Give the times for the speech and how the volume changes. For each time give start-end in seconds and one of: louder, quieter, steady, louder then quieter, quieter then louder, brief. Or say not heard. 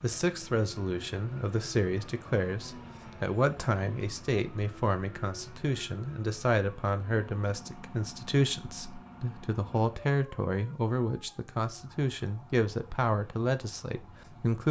0.0-14.6 steady.